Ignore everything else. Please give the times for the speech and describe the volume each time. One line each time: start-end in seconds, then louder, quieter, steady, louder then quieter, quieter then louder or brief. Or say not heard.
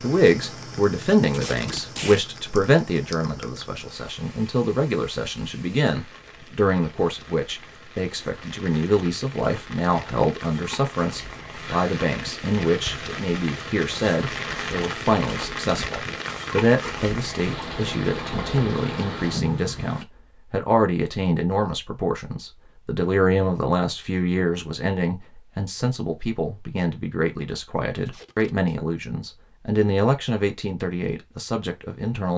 0.0-32.3 steady.